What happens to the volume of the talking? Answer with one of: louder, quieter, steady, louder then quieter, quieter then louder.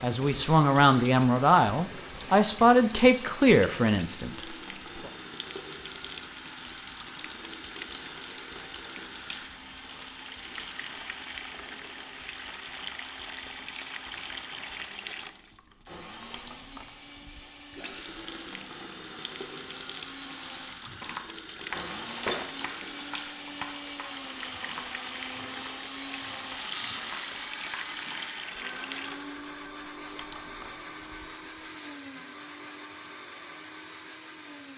quieter.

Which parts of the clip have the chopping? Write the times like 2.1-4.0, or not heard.
20.8-28.1.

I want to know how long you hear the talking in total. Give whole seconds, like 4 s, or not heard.
5 s.